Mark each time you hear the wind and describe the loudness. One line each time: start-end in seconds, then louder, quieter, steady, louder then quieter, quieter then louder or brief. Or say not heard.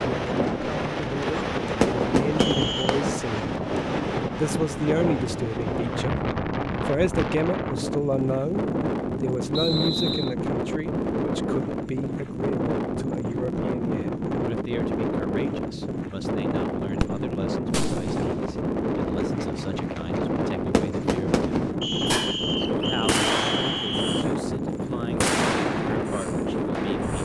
0.0-27.2 steady.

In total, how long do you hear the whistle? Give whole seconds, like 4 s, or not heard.
4 s.